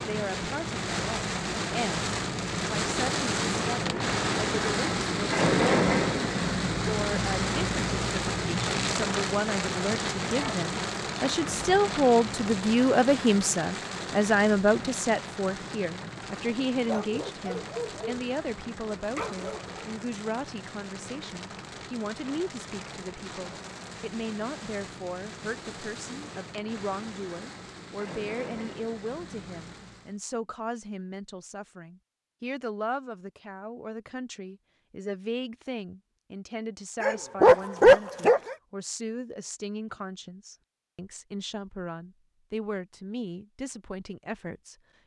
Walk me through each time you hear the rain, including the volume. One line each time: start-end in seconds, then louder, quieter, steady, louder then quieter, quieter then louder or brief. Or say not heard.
0.0-30.1 quieter.